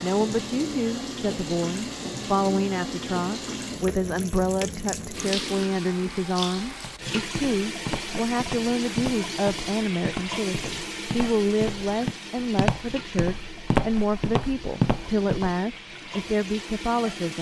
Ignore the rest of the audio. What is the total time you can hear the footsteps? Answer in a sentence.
The footsteps can be heard for 9 seconds in total.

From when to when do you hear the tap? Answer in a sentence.
The tap can be heard from 0.0 to 17.3 s.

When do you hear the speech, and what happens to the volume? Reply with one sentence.
The speech can be heard from 0.0 to 17.3 s, at a steady volume.